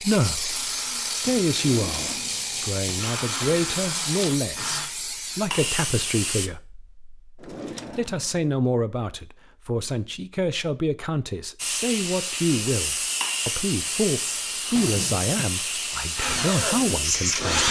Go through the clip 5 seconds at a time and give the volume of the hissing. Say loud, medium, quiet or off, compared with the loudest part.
medium, loud, loud, loud.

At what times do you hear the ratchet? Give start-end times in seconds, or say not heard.
0.0-4.3.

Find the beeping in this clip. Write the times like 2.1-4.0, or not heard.
not heard.